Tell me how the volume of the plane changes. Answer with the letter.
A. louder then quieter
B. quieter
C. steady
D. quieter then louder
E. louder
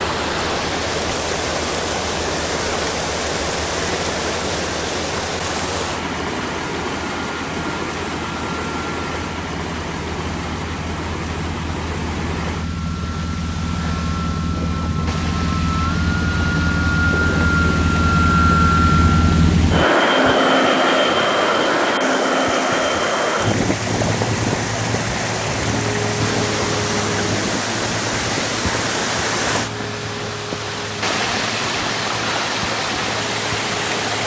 A.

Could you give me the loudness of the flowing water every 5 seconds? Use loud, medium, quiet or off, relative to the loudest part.
loud, loud, medium, medium, loud, loud, loud.